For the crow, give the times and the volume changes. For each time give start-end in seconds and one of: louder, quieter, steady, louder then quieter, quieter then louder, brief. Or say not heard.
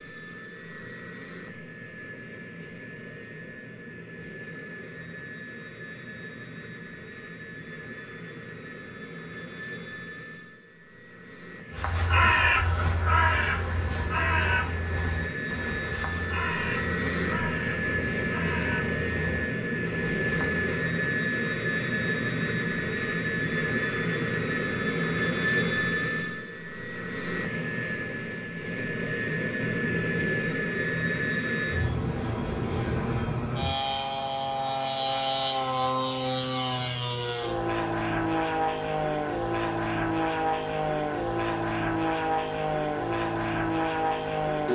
11.7-20.9 quieter.